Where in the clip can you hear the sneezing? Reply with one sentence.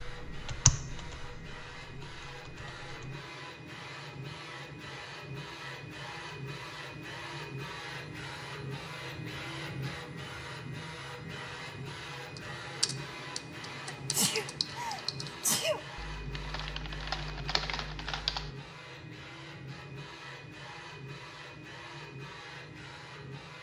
You can hear the sneezing from 13.8 to 15.8 s.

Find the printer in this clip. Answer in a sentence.
The printer can be heard from 0.0 to 23.5 s.